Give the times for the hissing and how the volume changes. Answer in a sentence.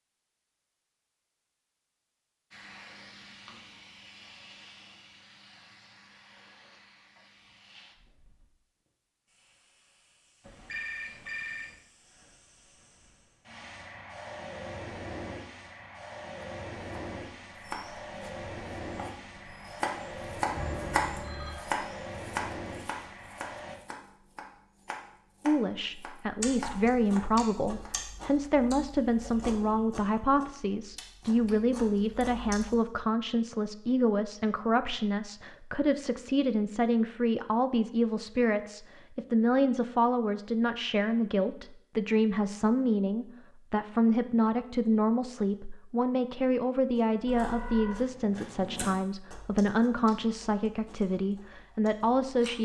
You can hear the hissing from 2.5 to 23.8 s, getting quieter then louder.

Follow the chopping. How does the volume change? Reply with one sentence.
The loudness of the chopping goes up, then down.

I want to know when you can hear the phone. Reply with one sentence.
You can hear the phone from 10.4 to 11.8 s, from 20.5 to 21.6 s and from 47.2 to 48.0 s.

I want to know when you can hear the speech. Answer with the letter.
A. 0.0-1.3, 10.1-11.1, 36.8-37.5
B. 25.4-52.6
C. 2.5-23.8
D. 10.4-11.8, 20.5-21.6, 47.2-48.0
B.